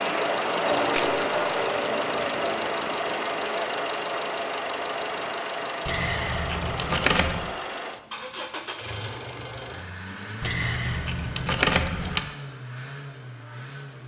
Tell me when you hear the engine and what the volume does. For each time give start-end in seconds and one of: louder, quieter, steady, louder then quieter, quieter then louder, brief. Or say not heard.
0.0-14.0 quieter.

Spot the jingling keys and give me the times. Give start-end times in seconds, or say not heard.
0.7-3.1, 5.8-7.5, 10.4-12.2.